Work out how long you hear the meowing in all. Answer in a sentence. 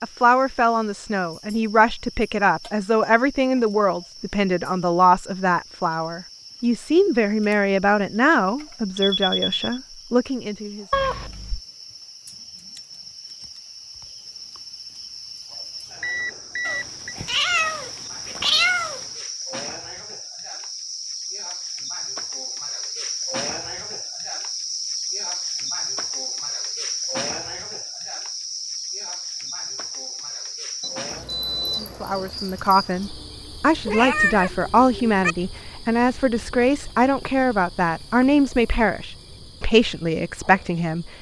The meowing can be heard for 5 seconds in total.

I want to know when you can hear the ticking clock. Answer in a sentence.
The ticking clock can't be heard in this clip.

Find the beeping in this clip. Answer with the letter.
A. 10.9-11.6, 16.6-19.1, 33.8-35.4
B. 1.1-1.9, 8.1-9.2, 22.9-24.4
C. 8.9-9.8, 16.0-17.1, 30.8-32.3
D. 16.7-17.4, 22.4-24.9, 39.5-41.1
C.